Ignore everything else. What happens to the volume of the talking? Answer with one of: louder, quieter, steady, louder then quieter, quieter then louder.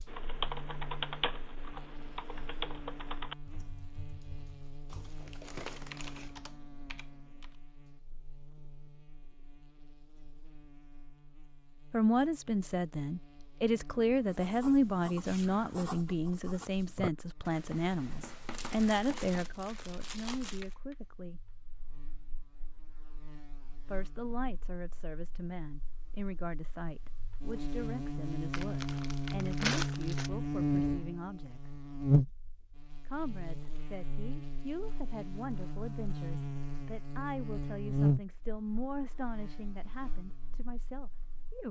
quieter.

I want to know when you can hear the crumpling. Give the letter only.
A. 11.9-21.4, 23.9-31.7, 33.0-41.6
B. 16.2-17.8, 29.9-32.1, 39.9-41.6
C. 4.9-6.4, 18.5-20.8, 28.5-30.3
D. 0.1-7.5
C.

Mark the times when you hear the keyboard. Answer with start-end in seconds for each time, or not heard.
0.1-7.5.